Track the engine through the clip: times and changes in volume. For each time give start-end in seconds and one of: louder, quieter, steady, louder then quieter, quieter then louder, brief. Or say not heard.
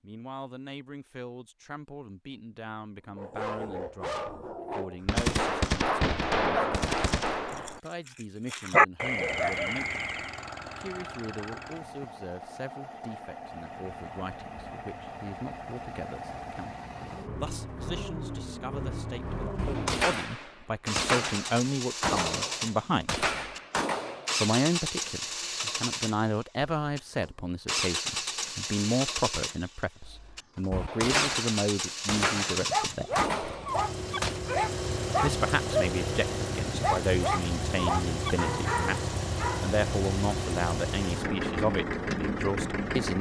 9.1-43.1 louder.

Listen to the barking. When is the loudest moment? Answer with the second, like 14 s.
9 s.